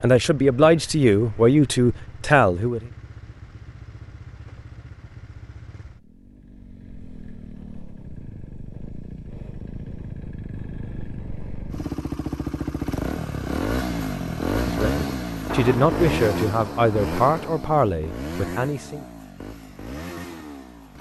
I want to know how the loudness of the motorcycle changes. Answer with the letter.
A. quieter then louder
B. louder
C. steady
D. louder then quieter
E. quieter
D.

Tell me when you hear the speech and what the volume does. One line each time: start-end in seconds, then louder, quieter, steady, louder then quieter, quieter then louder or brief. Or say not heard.
0.0-2.9 brief
14.8-19.1 quieter.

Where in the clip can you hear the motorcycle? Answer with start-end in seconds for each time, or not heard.
0.1-20.9.